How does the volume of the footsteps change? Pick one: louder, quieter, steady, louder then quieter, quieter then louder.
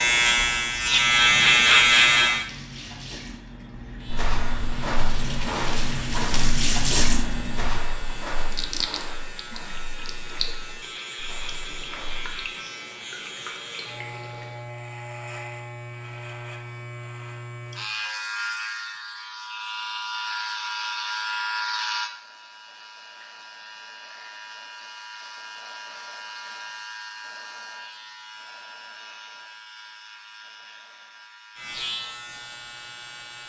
quieter.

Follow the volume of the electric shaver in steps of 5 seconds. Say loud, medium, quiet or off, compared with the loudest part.
loud, quiet, quiet, quiet, quiet, quiet, quiet.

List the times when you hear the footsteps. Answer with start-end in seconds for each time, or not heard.
4.0-12.3.